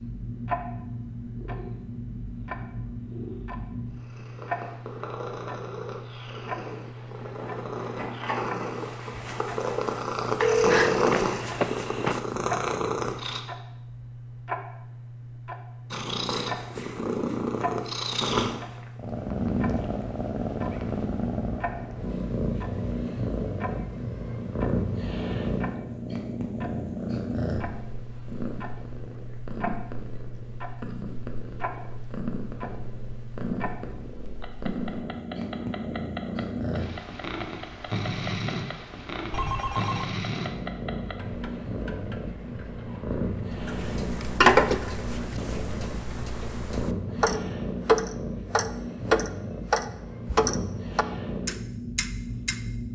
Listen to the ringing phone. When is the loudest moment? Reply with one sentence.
The loudest moment of the ringing phone is at 11 seconds.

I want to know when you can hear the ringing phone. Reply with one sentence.
You can hear the ringing phone from 10.4 to 12.2 s and from 39.3 to 40.1 s.